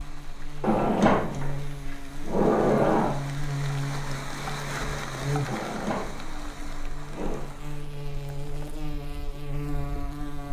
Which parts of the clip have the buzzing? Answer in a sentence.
The buzzing can be heard from 0.0 to 10.4 s.